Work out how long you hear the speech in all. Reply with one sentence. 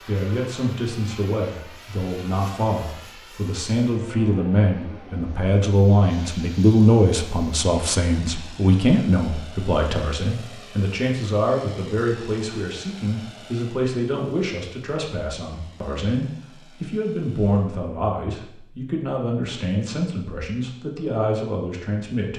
The speech can be heard for 22 seconds in total.